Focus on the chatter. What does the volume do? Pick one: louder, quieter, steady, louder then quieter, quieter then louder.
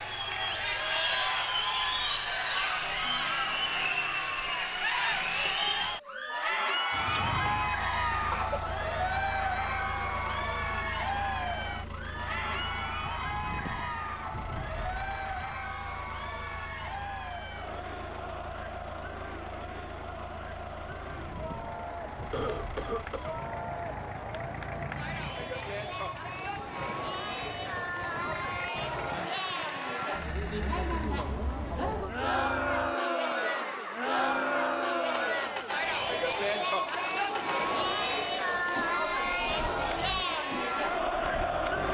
quieter then louder.